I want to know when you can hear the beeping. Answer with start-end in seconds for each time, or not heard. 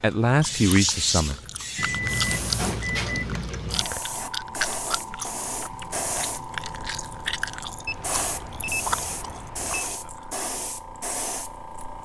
1.8-3.4, 7.8-9.8.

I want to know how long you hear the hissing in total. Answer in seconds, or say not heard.
12 s.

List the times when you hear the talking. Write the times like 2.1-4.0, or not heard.
0.0-1.4.